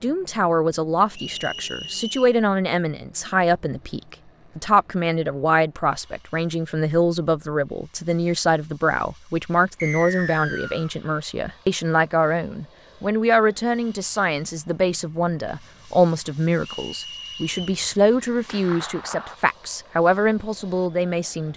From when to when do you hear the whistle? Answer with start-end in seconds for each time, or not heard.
1.1-2.4, 9.8-10.9, 16.6-17.8.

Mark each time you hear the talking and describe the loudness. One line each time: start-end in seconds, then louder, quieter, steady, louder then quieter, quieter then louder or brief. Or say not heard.
0.0-21.5 steady.